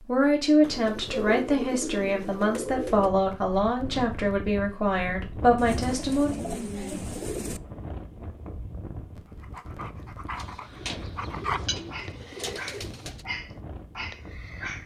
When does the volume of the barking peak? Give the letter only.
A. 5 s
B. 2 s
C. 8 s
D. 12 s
D.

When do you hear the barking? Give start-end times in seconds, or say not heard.
9.4-14.8.